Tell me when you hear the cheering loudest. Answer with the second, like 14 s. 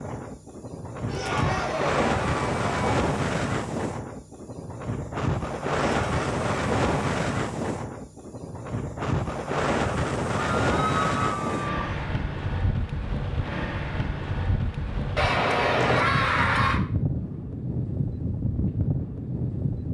16 s.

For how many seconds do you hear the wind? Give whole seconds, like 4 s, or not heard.
20 s.